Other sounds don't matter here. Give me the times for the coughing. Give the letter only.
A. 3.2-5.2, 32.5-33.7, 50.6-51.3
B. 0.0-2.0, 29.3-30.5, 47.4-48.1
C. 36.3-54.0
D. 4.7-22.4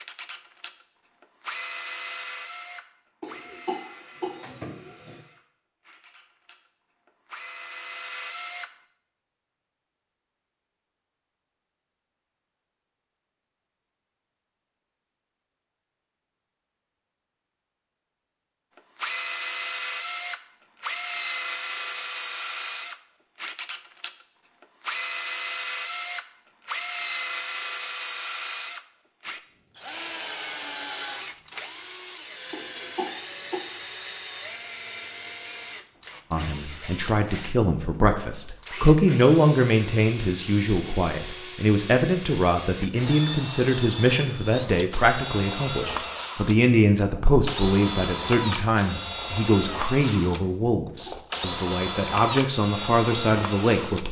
A.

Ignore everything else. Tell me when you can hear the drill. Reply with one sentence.
The drill can be heard from 0.0 to 8.7 s and from 18.8 to 54.0 s.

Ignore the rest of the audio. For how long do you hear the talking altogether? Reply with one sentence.
You can hear the talking for 18 seconds altogether.